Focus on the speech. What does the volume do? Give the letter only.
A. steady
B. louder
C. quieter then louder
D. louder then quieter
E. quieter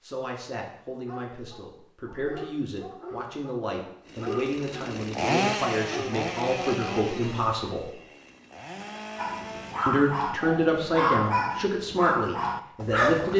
B.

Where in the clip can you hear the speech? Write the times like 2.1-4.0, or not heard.
0.0-7.9, 9.8-13.3.